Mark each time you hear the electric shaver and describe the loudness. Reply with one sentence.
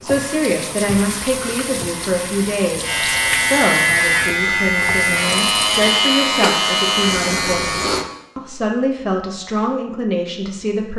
The electric shaver can be heard from 2.8 to 8.1 s, at a steady volume.